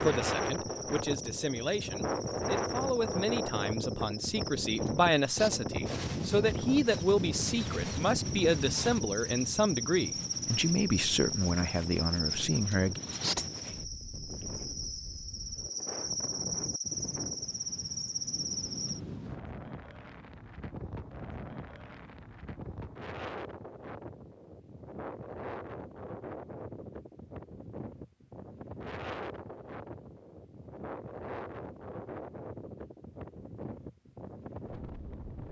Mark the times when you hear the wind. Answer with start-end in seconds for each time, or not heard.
0.0-35.4.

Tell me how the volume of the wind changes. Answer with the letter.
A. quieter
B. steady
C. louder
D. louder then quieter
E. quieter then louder
A.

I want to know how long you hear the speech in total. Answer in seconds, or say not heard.
13 s.